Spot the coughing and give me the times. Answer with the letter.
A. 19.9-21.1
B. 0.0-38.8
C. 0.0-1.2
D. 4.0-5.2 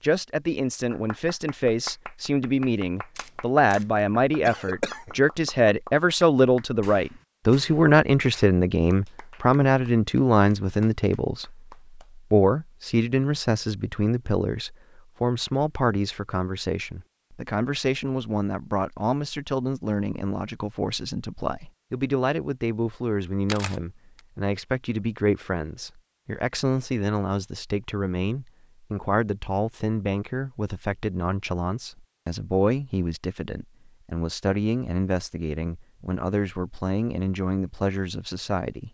D.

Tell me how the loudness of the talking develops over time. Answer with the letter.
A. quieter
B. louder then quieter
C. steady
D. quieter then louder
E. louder
A.